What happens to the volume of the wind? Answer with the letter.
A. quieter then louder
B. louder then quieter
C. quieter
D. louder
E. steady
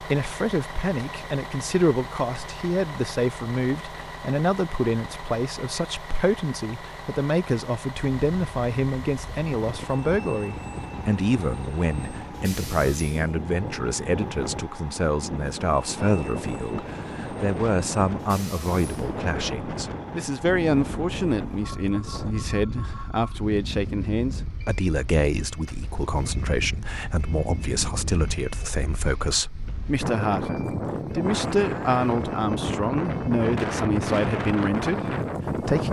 D.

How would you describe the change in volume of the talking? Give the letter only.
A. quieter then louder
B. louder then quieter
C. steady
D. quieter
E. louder
C.